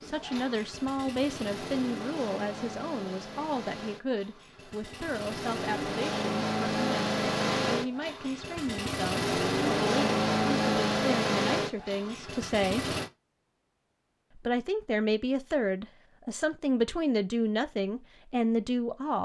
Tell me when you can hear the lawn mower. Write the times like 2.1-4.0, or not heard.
0.0-13.1.